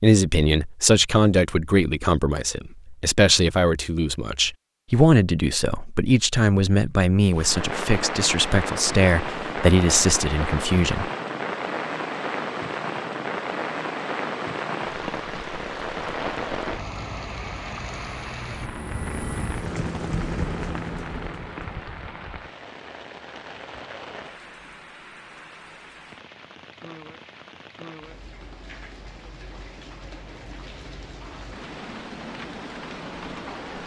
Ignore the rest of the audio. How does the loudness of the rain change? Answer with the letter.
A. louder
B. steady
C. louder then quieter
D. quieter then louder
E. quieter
E.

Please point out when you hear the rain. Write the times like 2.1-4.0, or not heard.
7.3-33.8.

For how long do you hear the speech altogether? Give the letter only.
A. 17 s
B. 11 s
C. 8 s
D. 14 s
B.